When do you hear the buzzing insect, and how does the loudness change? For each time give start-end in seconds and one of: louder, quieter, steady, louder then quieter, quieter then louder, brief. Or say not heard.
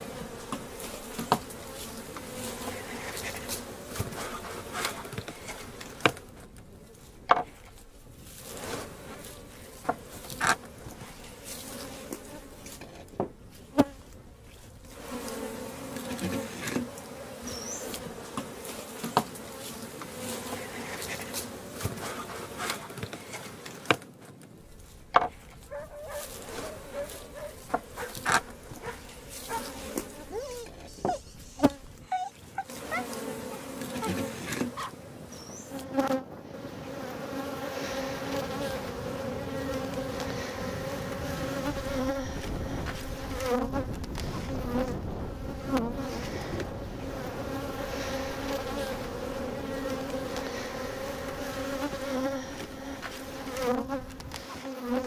0.0-55.0 steady.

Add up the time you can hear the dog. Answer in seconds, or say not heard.
9 s.